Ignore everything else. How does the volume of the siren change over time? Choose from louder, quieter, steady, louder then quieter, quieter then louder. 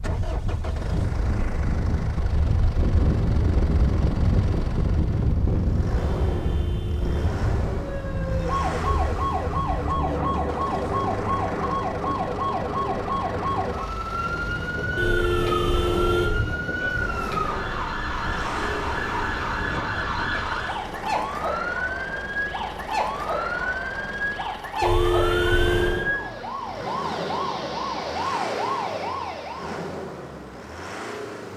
steady.